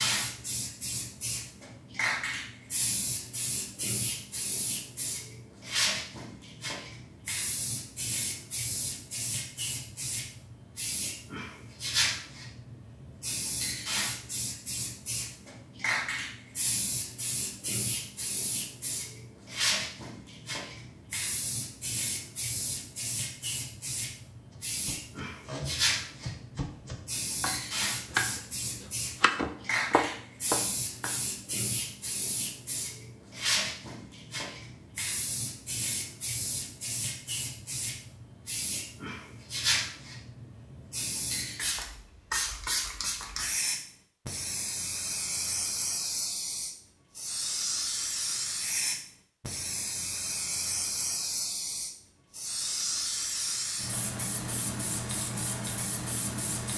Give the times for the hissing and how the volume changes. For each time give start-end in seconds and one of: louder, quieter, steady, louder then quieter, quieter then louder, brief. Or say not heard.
0.0-56.7 steady.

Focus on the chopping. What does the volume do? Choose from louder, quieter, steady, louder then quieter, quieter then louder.
louder.